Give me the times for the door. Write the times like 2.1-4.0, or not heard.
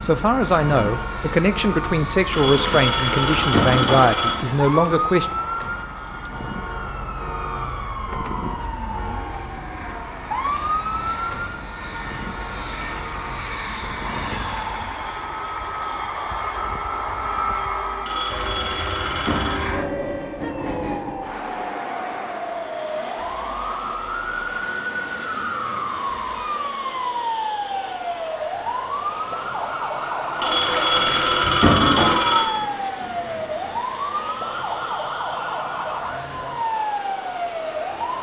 not heard.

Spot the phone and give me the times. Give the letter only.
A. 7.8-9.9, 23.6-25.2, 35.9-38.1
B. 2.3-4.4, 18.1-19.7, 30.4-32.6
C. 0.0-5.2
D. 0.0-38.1
B.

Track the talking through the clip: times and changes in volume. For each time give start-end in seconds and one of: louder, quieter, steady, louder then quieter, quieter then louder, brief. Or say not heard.
0.0-5.2 steady.